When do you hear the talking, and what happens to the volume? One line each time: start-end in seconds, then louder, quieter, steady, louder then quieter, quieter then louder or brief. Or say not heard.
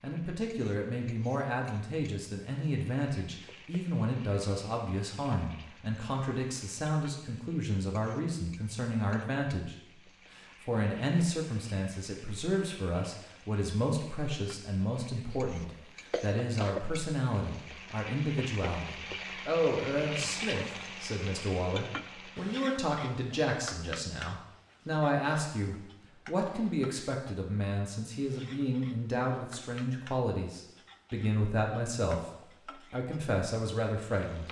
0.0-9.8 steady
10.3-34.4 steady.